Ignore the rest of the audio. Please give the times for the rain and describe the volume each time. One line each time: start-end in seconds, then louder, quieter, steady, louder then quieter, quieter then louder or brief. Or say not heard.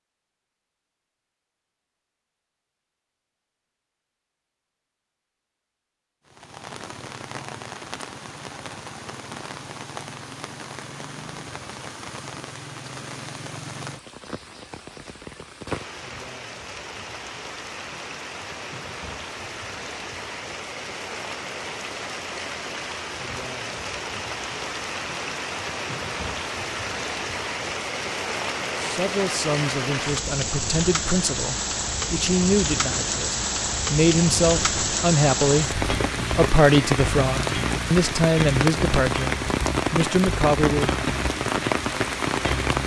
6.2-42.8 louder.